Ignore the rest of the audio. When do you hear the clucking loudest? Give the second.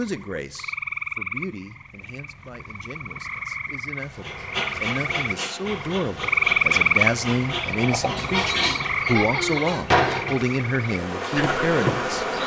9 s.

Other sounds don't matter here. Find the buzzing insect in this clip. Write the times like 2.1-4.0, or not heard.
4.0-12.4.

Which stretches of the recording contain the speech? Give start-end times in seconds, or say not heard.
0.0-12.2.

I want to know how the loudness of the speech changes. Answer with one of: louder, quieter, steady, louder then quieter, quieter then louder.
louder.